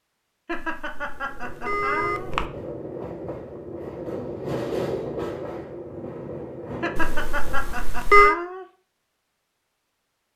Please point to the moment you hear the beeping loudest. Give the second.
8 s.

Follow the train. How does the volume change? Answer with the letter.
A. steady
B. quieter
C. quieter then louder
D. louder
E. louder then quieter
E.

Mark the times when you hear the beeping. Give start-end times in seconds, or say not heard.
0.5-2.5, 7.0-8.3.